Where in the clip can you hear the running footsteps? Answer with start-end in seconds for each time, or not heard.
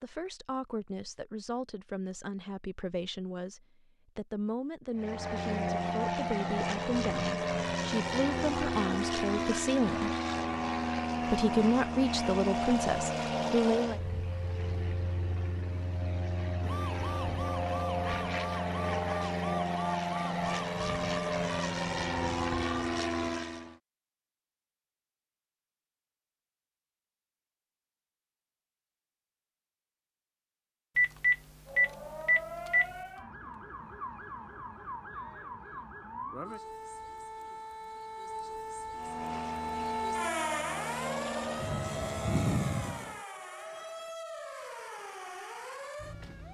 not heard.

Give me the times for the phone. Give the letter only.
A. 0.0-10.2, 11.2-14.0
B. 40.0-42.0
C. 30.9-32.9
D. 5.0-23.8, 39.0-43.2
C.